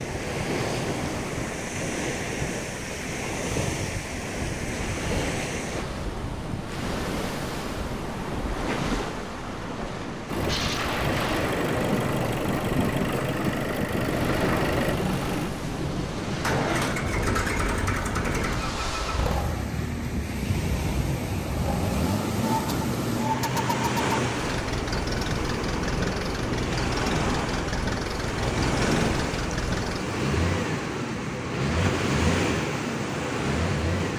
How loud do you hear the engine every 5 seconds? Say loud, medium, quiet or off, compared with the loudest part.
off, off, loud, loud, loud, loud, loud.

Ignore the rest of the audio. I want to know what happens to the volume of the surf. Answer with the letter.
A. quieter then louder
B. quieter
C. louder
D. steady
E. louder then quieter
D.